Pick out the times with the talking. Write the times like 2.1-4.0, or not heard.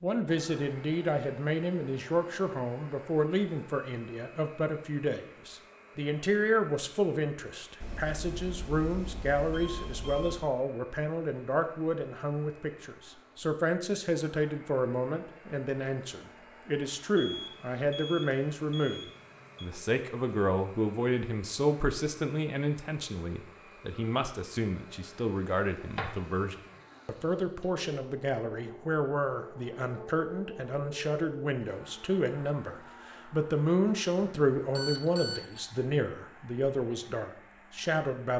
0.0-38.3.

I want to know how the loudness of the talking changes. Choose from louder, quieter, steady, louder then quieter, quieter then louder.
steady.